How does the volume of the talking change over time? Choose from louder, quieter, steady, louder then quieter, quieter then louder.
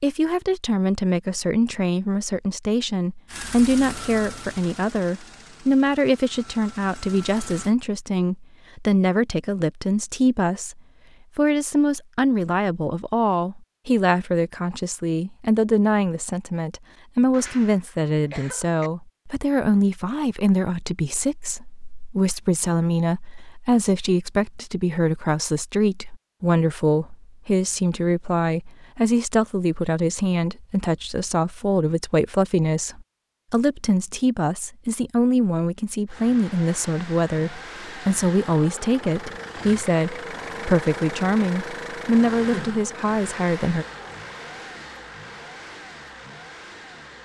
steady.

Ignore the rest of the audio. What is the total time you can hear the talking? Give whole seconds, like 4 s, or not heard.
44 s.